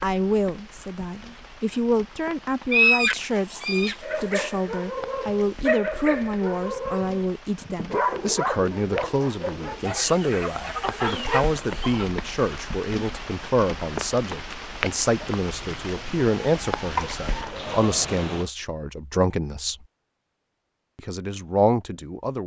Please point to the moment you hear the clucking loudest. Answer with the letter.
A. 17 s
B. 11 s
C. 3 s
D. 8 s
C.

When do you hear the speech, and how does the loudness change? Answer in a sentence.
The speech can be heard from 0.0 to 19.9 s, at a steady volume; and briefly from 20.9 to 22.4 s.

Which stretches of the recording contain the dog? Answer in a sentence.
You can hear the dog from 4.0 to 10.1 s.